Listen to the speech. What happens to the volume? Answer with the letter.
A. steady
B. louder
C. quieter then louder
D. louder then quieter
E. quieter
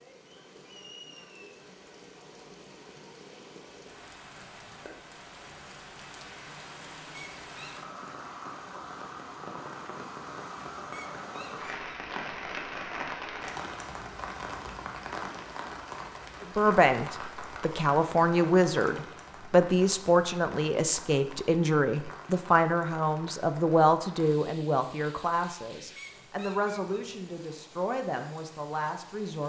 E.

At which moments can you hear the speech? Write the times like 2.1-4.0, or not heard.
16.4-29.4.